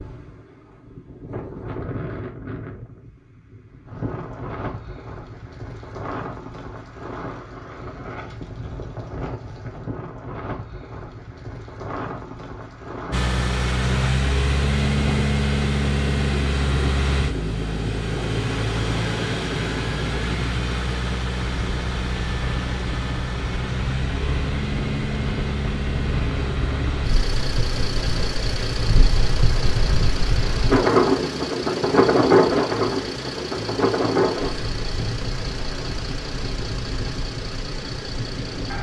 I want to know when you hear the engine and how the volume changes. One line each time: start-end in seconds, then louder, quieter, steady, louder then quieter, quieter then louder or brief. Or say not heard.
13.1-38.7 quieter.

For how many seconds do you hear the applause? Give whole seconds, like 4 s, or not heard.
not heard.